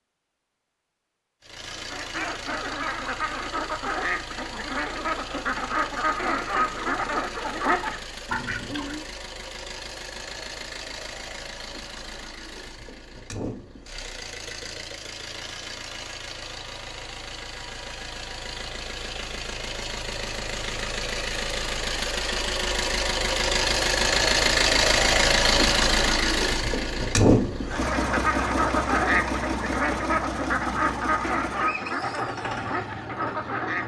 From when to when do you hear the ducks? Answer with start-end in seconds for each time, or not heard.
1.7-9.1, 27.6-33.8.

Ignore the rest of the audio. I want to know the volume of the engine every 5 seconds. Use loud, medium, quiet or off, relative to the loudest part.
quiet, quiet, quiet, quiet, loud, loud, medium.